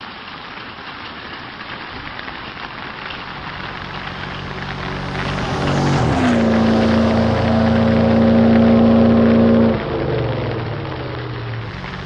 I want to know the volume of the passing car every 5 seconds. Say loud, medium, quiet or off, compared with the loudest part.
quiet, loud, medium.